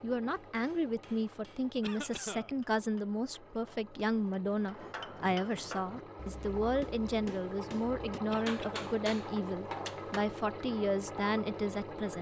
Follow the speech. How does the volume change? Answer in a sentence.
The volume of the speech stays about the same.